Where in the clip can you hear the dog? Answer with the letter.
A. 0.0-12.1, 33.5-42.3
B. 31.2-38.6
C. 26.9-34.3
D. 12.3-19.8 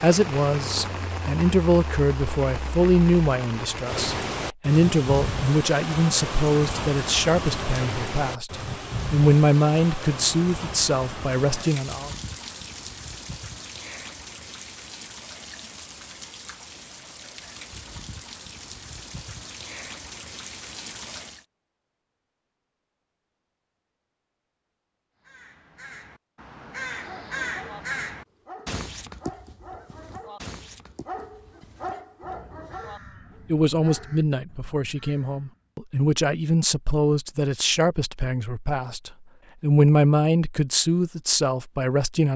C.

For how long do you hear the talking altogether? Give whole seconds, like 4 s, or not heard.
21 s.